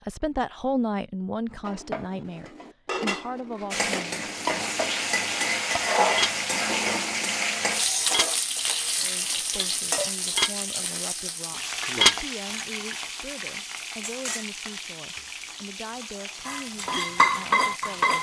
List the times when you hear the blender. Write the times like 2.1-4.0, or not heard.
not heard.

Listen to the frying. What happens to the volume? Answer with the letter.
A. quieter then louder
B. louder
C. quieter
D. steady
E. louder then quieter
C.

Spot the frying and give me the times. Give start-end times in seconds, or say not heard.
3.7-18.1.